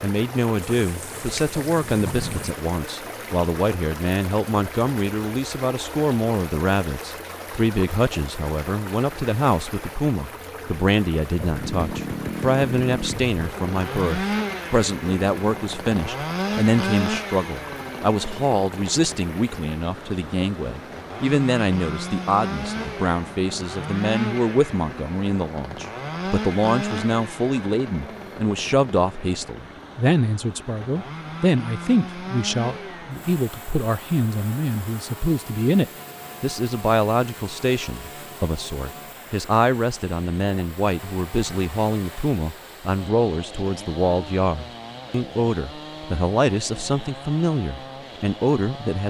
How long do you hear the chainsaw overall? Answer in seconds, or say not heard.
38 s.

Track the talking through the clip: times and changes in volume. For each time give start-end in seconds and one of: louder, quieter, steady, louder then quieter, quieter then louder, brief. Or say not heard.
0.0-49.0 steady.